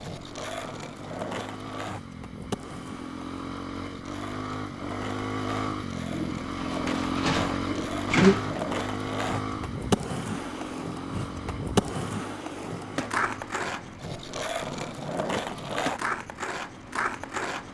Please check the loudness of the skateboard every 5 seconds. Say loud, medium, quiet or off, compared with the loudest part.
medium, loud, loud, loud.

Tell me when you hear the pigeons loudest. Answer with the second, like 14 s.
8 s.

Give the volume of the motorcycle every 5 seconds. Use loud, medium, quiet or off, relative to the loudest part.
medium, loud, medium, quiet.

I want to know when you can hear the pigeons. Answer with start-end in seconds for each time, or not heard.
6.1-8.6.